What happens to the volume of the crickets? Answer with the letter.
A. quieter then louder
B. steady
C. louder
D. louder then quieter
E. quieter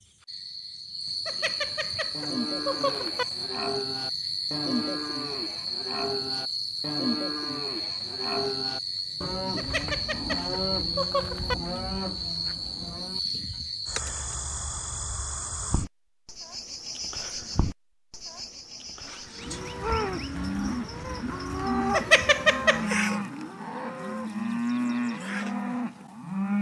E.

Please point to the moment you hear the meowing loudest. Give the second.
22 s.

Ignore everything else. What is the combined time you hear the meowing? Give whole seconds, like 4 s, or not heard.
5 s.